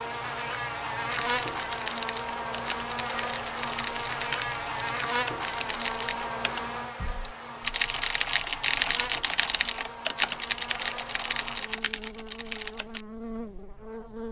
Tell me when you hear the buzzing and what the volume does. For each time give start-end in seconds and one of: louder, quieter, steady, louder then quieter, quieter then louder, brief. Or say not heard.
0.0-14.2 quieter.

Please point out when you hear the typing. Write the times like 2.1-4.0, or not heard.
1.1-13.1.